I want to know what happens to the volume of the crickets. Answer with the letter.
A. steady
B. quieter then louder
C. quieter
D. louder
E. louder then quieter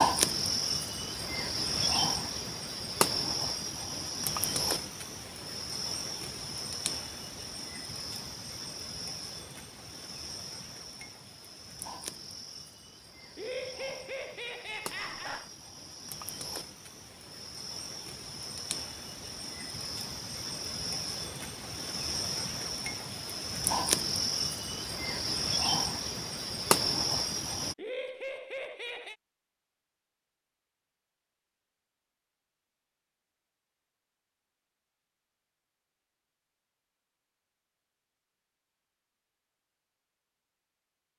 B.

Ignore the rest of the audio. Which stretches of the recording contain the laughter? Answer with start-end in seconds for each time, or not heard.
13.3-15.5, 27.8-29.1.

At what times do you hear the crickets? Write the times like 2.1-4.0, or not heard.
0.0-27.8.